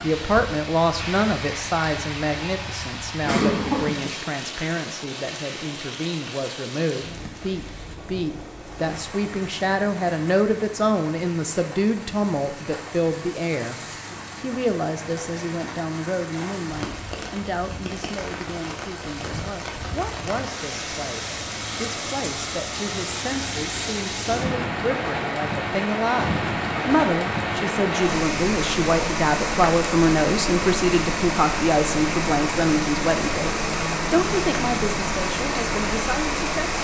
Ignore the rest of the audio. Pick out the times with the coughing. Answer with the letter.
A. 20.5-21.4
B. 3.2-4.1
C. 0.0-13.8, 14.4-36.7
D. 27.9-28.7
B.